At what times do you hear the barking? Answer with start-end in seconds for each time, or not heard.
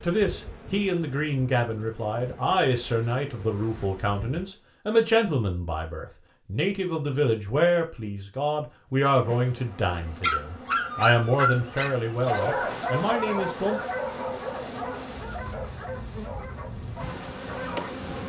9.8-17.9.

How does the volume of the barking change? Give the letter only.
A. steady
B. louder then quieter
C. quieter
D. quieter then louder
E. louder
C.